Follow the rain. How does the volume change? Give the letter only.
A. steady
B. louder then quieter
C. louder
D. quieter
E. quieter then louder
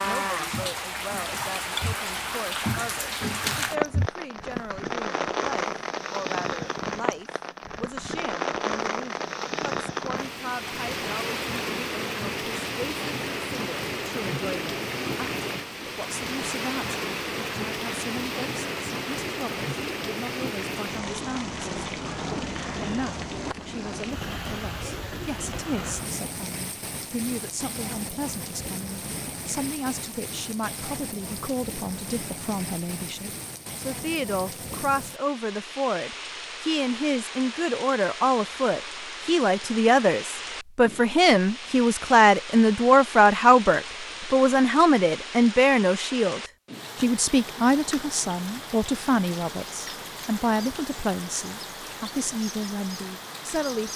D.